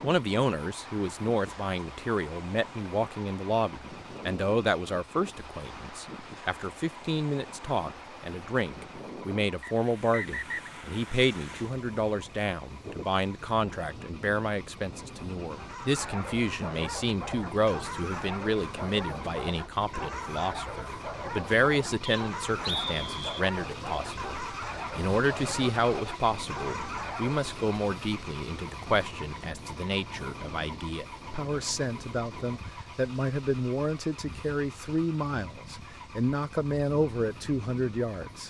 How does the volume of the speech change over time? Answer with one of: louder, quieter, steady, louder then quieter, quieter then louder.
steady.